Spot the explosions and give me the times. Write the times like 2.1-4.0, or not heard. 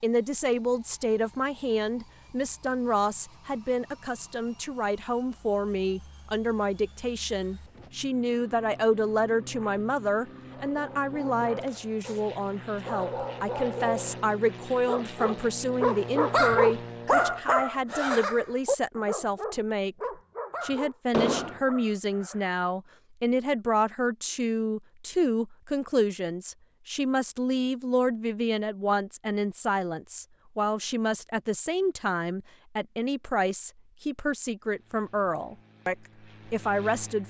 21.1-21.6.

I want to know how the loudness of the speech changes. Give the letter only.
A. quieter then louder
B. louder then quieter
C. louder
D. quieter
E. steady
E.